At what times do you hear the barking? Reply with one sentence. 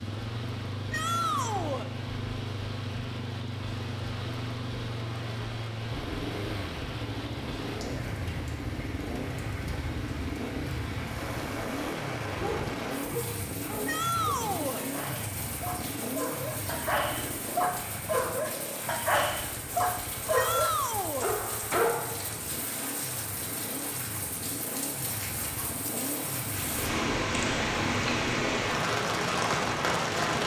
The barking can be heard from 12.3 to 22.2 s.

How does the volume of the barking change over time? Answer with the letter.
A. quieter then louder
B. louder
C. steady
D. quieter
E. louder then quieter
B.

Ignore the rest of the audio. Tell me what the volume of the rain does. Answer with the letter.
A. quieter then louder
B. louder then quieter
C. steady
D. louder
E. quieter
D.